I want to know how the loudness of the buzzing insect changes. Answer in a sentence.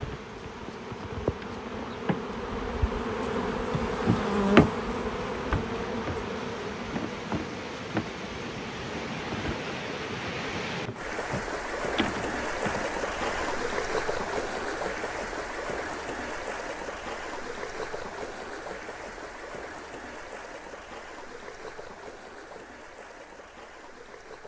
The volume of the buzzing insect goes up, then down.